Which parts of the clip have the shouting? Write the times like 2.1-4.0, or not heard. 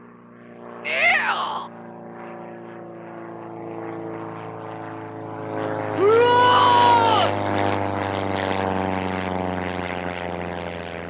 0.8-1.7, 6.0-7.3.